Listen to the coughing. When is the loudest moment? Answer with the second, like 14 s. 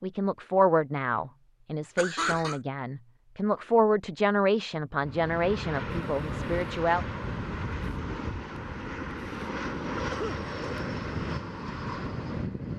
2 s.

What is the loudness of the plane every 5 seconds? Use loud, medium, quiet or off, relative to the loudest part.
off, loud, loud.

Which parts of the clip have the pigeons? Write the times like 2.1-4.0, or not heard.
not heard.